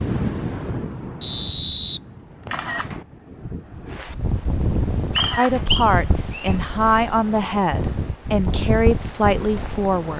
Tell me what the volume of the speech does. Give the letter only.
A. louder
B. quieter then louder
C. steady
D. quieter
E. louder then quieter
C.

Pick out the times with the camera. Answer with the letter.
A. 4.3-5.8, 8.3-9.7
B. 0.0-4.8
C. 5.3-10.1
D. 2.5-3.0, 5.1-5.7
D.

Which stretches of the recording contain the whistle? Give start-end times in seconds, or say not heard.
1.2-2.7, 5.2-6.5.